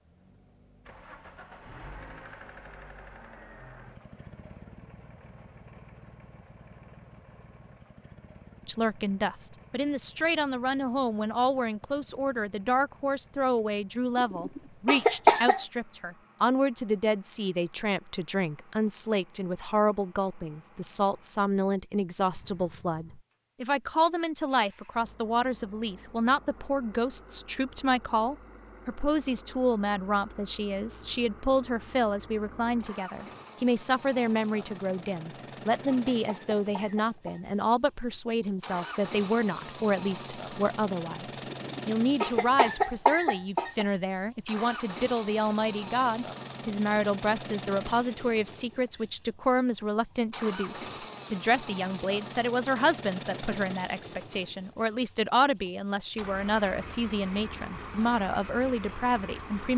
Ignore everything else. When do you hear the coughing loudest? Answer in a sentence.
The loudest moment of the coughing is at 15 seconds.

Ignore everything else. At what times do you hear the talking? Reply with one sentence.
The talking can be heard from 8.7 to 59.7 s.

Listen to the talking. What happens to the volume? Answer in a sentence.
The loudness of the talking stays about the same.